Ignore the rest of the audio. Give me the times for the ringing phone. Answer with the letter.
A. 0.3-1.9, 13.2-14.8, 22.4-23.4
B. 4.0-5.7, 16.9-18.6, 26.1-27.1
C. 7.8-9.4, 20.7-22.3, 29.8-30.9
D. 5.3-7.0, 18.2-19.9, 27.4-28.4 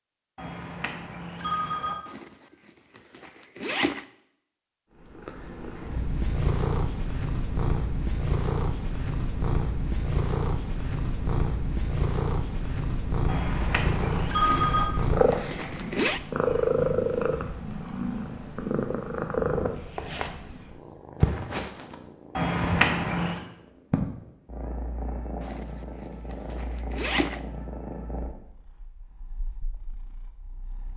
A.